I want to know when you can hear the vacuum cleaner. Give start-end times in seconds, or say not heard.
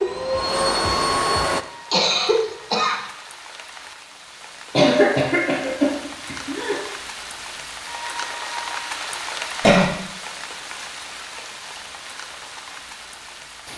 0.0-1.6.